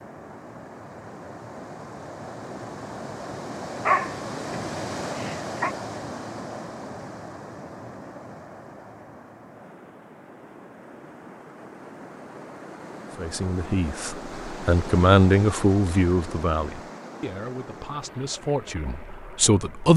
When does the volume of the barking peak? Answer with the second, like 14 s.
4 s.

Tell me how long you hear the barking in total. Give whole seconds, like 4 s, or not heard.
2 s.